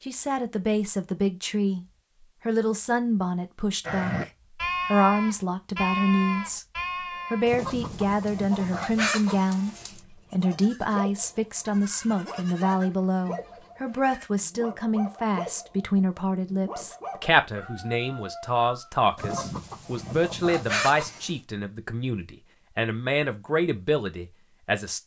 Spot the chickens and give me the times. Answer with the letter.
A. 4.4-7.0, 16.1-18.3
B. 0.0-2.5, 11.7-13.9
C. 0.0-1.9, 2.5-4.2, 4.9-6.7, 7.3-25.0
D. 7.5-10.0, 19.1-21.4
D.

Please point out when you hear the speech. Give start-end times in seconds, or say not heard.
0.0-1.9, 2.5-4.2, 4.9-6.7, 7.3-25.0.